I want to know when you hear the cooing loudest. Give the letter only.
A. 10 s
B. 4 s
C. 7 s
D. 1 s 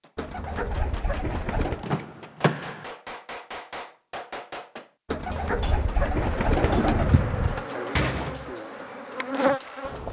C.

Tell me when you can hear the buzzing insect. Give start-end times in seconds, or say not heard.
5.9-10.0.